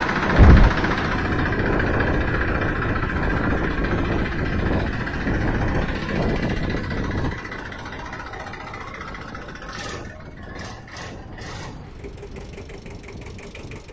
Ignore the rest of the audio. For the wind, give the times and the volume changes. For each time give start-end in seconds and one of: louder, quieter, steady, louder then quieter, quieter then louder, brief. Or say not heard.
0.0-13.8 quieter.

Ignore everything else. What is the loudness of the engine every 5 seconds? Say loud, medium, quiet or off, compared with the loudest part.
loud, medium, quiet.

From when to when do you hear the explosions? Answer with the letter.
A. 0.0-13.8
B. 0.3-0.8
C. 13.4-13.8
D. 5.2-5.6
B.